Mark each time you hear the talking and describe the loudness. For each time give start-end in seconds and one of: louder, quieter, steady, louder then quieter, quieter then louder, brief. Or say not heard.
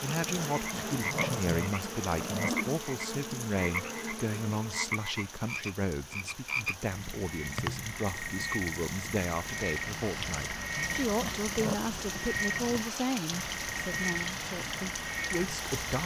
0.0-16.0 steady.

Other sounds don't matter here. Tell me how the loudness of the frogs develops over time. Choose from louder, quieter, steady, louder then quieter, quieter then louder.
steady.